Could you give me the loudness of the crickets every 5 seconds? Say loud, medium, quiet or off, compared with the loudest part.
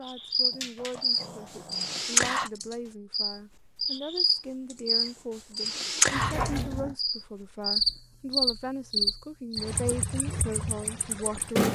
loud, loud, medium.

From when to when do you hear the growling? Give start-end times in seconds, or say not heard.
0.5-2.5, 6.2-7.0.